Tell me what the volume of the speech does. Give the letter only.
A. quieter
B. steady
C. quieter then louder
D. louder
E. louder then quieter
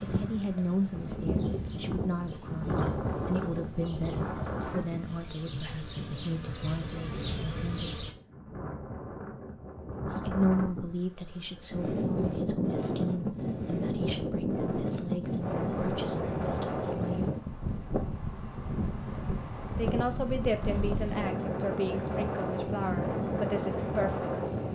B.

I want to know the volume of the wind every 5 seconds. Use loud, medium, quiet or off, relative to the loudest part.
loud, medium, loud, loud, loud.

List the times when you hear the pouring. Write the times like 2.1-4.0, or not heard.
not heard.